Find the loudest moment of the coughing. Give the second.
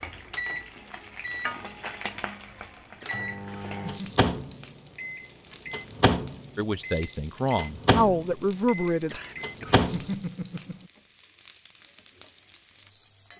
10 s.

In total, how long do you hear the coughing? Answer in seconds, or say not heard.
3 s.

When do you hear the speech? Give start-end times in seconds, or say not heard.
6.5-9.2.